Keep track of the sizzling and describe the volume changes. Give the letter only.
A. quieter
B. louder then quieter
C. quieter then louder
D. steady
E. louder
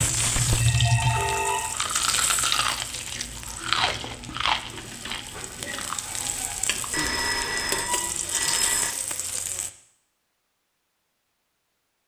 C.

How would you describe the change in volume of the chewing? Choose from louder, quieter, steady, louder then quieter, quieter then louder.
quieter.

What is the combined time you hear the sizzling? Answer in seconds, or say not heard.
10 s.